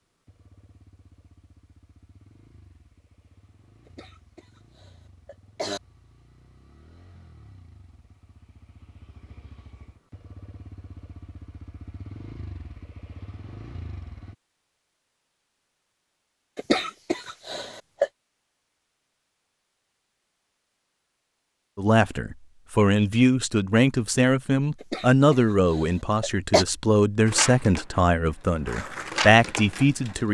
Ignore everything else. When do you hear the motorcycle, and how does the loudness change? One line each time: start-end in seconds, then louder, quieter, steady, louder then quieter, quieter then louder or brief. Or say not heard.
0.1-14.3 louder.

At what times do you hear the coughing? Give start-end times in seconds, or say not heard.
3.9-5.8, 16.6-18.1, 24.8-26.6.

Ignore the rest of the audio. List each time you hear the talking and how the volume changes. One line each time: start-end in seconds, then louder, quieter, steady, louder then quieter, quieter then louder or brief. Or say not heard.
21.8-30.2 steady.